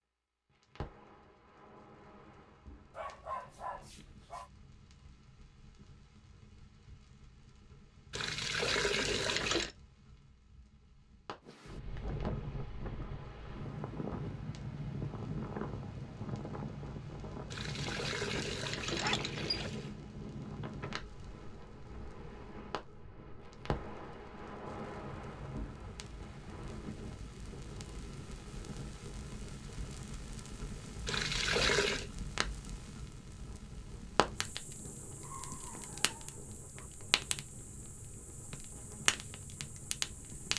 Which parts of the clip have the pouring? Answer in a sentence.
The pouring can be heard from 8.1 to 9.7 s, from 17.5 to 19.9 s and from 31.1 to 32.1 s.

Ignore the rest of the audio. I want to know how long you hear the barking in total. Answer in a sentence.
You can hear the barking for 4 seconds altogether.